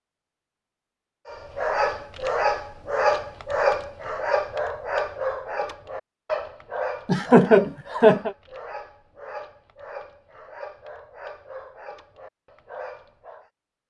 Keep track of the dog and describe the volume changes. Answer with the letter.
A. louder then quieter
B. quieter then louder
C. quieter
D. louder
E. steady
C.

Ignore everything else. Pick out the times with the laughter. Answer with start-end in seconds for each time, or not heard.
7.0-8.3.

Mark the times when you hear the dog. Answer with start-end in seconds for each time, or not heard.
1.2-13.5.